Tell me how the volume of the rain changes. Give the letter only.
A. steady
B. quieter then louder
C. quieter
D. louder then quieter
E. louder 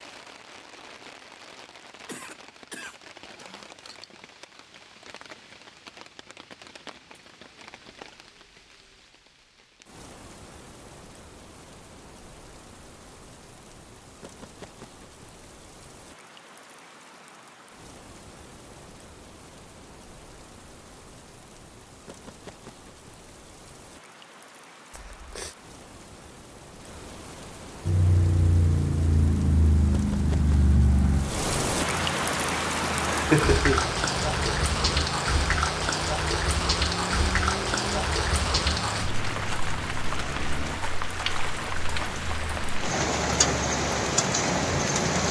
E.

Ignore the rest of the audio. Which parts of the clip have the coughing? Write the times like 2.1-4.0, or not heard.
2.0-4.0, 24.9-25.6, 33.0-34.0.